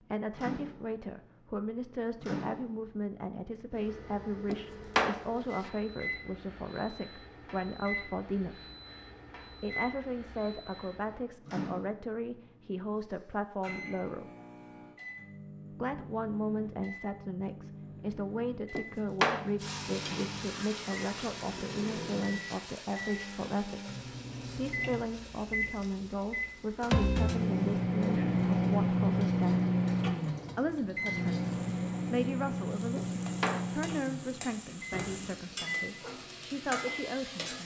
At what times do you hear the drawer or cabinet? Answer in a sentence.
The drawer or cabinet can be heard from 4.5 to 5.7 s, from 18.8 to 20.3 s and from 33.0 to 33.7 s.